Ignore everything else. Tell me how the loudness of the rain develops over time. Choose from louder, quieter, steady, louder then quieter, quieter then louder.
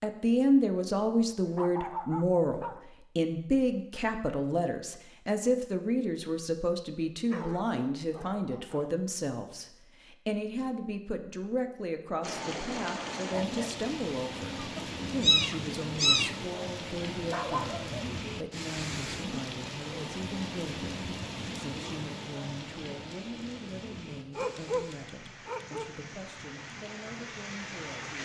quieter.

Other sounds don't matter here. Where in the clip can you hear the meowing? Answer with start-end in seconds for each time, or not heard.
14.6-16.4.